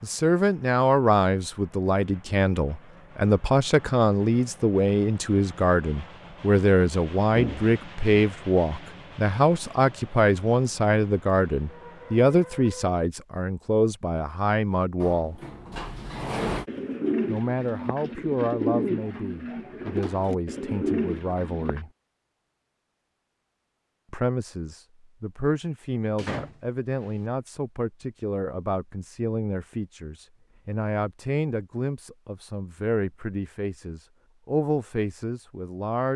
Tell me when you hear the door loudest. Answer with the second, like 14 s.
16 s.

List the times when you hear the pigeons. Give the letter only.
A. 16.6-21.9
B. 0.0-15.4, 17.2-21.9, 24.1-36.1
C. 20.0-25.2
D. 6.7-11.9
A.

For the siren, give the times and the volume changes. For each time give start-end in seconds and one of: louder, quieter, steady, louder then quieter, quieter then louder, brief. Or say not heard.
not heard.